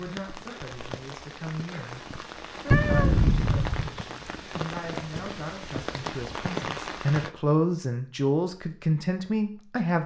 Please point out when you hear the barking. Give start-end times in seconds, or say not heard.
not heard.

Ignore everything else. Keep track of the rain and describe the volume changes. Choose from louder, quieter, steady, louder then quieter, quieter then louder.
louder.